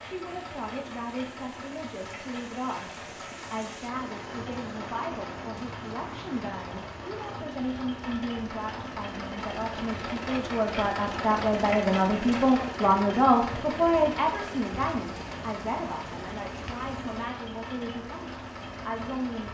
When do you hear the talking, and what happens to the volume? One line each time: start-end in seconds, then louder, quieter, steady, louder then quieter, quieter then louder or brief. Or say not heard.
0.0-19.4 louder then quieter.